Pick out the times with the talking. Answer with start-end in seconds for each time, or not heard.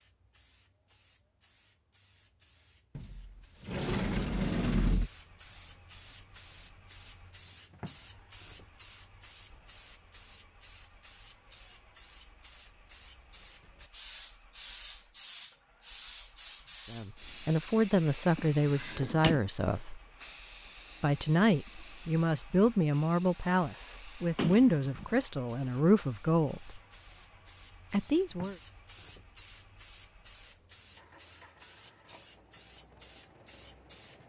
16.9-20.0, 21.0-26.8, 27.9-28.6.